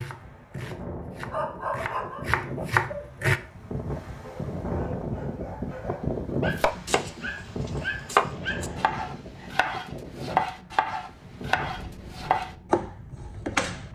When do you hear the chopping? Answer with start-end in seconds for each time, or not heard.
0.0-3.4, 6.5-13.8.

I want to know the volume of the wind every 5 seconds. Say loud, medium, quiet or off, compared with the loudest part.
loud, loud, medium.